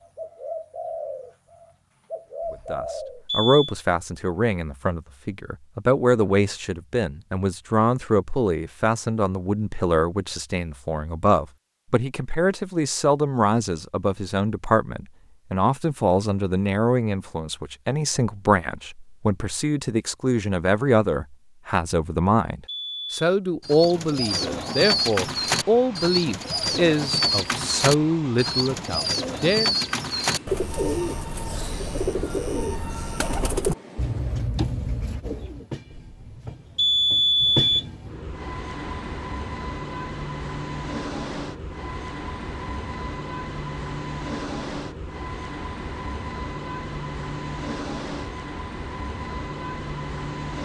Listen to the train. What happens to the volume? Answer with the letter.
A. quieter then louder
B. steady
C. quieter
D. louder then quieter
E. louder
E.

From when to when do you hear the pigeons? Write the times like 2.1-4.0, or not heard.
0.0-3.2, 23.6-35.6.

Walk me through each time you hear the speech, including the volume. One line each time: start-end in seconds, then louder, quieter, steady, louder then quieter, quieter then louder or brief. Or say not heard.
2.5-29.8 steady.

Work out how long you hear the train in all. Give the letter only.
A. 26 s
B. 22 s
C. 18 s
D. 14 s
A.